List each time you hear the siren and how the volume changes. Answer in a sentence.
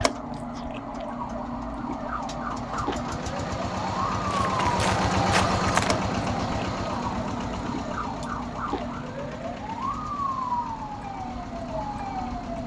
The siren can be heard from 0.0 to 12.6 s, at a steady volume.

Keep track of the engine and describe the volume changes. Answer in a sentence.
The loudness of the engine goes up, then down.